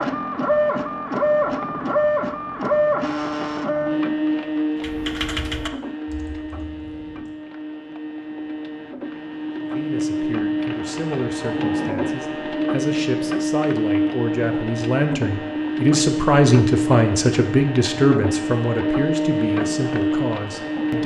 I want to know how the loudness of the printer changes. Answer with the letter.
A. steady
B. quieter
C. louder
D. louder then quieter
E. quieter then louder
E.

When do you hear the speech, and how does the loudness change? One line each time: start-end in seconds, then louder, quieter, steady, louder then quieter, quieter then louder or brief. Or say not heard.
9.7-21.0 louder then quieter.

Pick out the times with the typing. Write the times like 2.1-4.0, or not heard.
4.8-7.3.